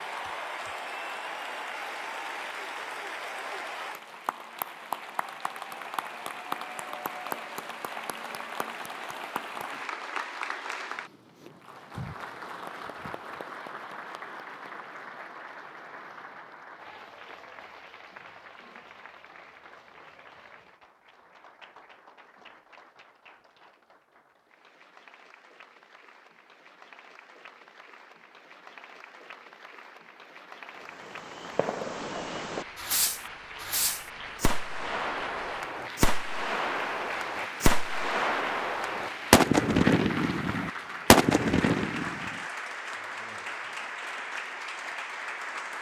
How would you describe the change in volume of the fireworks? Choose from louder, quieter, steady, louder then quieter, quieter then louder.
louder.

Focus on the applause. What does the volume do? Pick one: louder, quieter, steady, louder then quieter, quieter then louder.
quieter then louder.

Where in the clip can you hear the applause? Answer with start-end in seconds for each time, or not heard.
0.0-45.7.